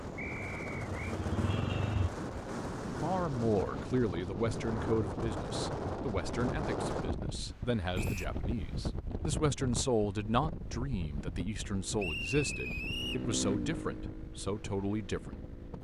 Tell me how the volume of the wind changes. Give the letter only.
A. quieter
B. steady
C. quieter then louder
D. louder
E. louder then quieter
A.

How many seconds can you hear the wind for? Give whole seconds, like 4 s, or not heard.
16 s.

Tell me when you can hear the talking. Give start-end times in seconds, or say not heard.
2.9-15.4.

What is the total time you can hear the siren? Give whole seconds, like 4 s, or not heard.
not heard.